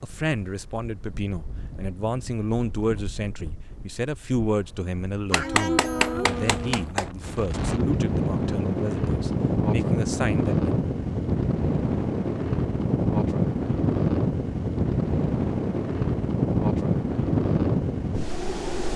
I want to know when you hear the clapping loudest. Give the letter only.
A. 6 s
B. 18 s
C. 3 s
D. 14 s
A.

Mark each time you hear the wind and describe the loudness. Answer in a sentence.
The wind can be heard from 0.0 to 18.9 s, getting louder.